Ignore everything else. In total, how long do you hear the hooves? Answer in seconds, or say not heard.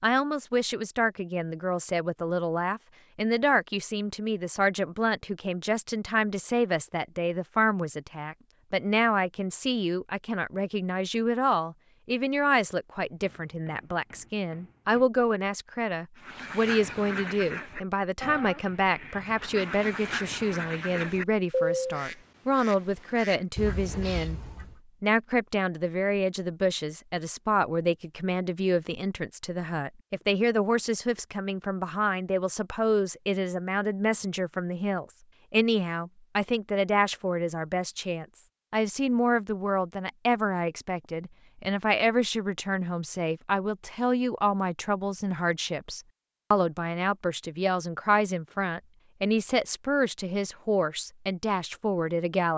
not heard.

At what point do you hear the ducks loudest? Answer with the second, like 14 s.
22 s.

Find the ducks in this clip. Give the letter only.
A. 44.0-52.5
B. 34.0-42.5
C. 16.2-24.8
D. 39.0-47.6
C.